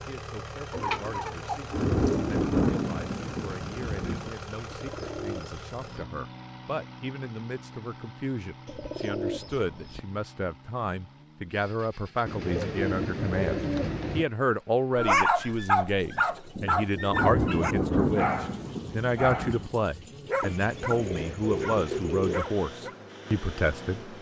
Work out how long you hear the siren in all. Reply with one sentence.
You can't hear the siren here.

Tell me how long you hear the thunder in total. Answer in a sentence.
The thunder can be heard for 5 seconds in total.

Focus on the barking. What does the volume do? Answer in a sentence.
The loudness of the barking goes down.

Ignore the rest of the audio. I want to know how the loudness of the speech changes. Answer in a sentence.
The loudness of the speech goes up.